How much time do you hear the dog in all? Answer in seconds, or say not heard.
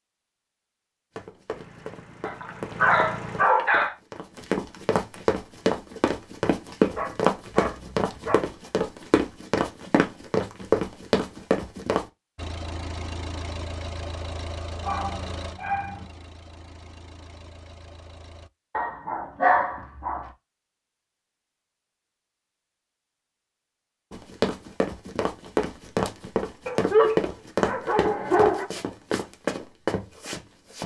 8 s.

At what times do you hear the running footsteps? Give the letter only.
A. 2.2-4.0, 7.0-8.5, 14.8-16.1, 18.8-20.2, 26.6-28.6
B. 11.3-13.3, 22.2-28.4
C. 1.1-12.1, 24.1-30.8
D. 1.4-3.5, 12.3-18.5
C.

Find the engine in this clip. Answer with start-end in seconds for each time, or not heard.
1.4-3.5, 12.3-18.5.